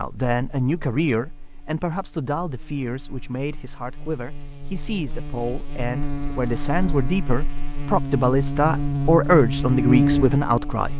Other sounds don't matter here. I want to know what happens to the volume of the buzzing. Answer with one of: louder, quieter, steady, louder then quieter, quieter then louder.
louder.